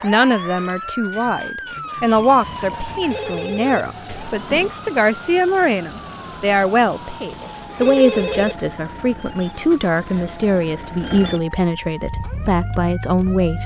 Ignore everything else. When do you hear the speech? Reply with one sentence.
You can hear the speech from 0.0 to 13.6 s.